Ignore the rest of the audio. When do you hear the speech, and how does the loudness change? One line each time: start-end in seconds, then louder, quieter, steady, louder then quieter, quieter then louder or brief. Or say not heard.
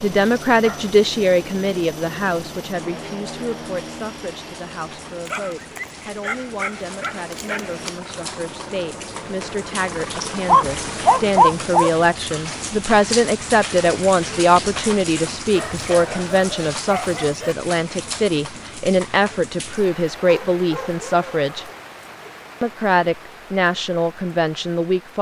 0.0-21.6 quieter then louder
22.6-25.1 brief.